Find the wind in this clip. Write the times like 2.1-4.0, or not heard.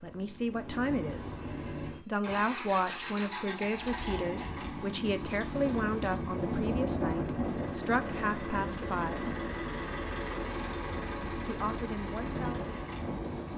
4.1-13.5.